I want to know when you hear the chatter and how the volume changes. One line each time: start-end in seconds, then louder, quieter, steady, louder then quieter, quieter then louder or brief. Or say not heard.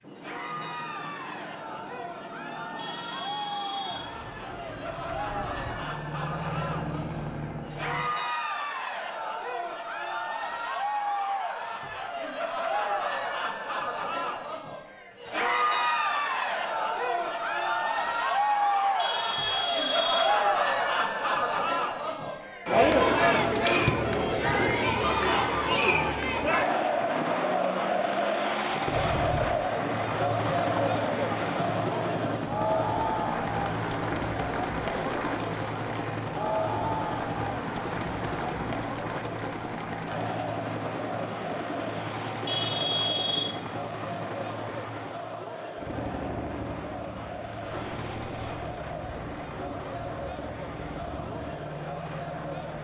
0.1-52.7 louder then quieter.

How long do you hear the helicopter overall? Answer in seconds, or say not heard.
32 s.